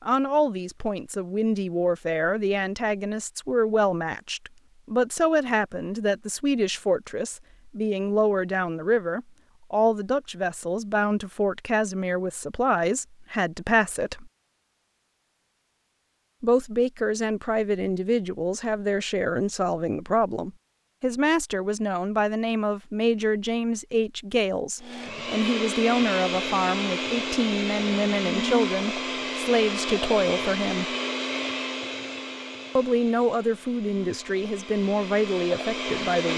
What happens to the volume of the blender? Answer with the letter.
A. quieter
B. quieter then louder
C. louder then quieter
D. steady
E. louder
A.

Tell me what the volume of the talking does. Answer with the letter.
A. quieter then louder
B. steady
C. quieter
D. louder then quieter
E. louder
B.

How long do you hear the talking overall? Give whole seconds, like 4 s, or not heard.
32 s.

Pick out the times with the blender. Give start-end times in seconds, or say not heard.
24.8-36.3.